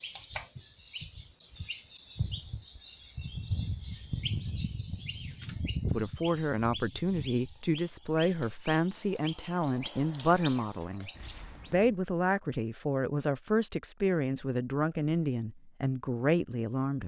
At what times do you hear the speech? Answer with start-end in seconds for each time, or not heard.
5.9-11.1, 11.7-17.0.